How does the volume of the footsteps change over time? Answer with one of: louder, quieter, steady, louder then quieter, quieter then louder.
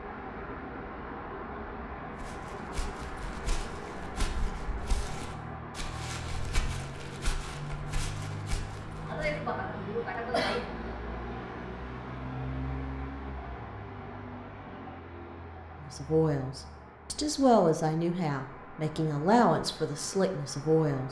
steady.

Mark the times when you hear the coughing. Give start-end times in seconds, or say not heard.
9.1-10.7.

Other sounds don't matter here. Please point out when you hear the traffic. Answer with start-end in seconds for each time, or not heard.
0.0-21.0.